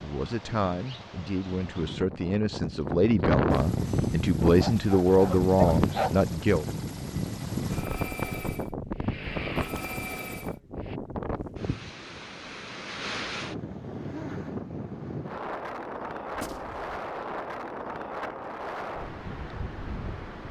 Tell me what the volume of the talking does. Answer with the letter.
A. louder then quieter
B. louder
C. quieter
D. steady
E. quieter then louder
B.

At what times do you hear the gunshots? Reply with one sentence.
You can hear the gunshots from 16.3 to 16.9 s.